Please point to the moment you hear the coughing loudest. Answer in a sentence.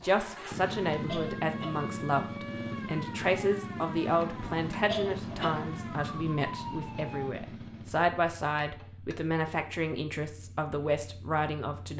The volume of the coughing peaks at 5 seconds.